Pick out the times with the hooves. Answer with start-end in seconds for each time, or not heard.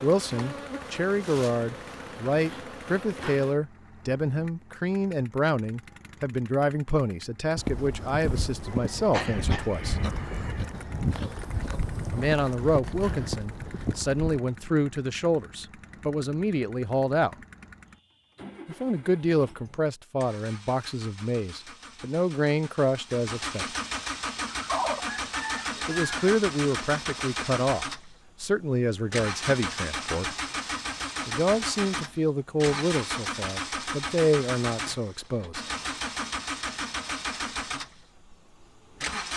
7.5-14.4.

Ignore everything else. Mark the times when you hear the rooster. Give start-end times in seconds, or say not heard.
8.7-11.2, 24.5-26.1.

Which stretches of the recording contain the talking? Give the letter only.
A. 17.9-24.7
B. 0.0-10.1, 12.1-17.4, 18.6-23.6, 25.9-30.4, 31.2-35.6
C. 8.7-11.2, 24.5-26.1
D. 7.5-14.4
B.